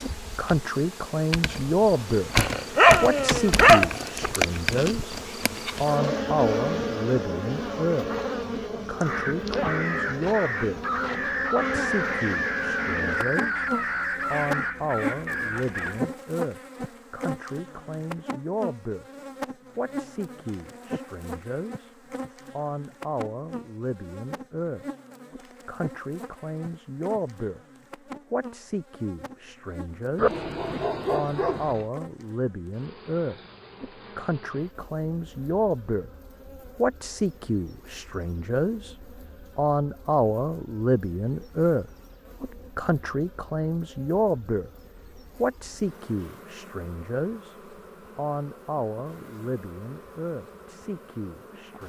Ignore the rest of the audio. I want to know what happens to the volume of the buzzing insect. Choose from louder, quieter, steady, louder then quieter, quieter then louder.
quieter.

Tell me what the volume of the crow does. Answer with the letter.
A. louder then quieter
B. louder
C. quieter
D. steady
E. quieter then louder
D.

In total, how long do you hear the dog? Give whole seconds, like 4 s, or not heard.
4 s.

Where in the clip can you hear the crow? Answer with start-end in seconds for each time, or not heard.
9.0-16.0.